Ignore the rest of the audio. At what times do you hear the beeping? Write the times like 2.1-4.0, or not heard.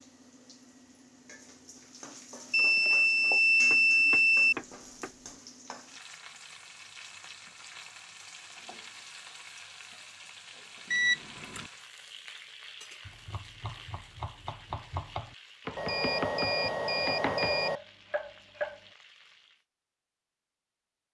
2.5-4.5, 10.9-11.7, 15.8-17.8.